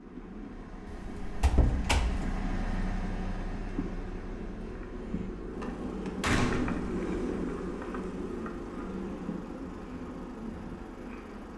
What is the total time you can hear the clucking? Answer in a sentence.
You can't hear the clucking here.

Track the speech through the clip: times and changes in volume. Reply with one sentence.
The speech can't be heard in this clip.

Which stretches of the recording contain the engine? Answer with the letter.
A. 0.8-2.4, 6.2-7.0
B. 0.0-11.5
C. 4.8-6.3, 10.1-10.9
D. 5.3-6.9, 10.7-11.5
B.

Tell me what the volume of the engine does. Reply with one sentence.
The volume of the engine goes down.